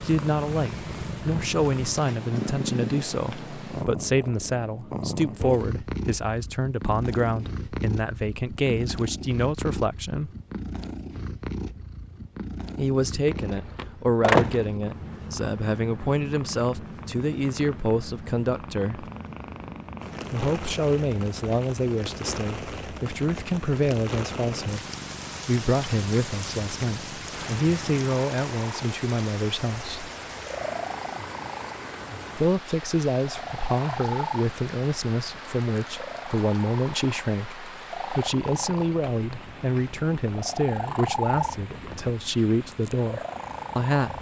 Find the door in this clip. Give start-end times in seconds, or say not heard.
13.3-14.7.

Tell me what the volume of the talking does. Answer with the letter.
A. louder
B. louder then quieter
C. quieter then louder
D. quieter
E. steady
E.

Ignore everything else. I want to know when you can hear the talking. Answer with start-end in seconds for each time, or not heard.
0.0-10.3, 12.8-19.1, 20.3-24.9, 25.4-30.1, 32.4-44.1.